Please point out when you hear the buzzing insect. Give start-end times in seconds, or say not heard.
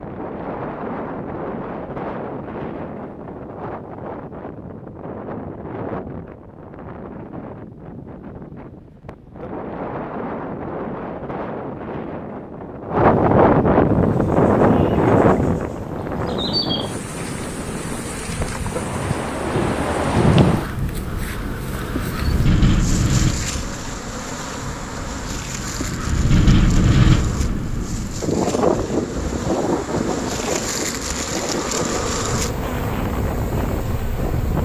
13.8-34.6.